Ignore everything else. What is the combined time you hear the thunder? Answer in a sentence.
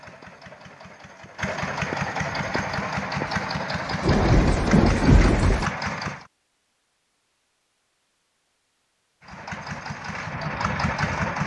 The thunder can be heard for 2 seconds in total.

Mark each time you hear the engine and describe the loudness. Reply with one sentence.
The engine can be heard from 0.0 to 6.3 s, getting louder; and briefly from 9.2 to 11.4 s.